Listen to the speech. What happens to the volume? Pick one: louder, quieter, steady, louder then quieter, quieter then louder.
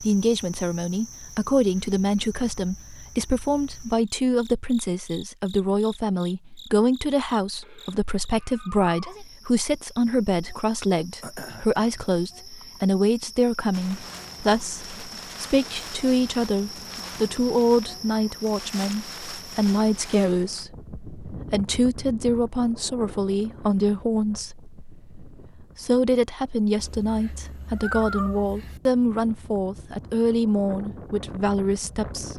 steady.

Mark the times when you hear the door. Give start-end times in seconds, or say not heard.
not heard.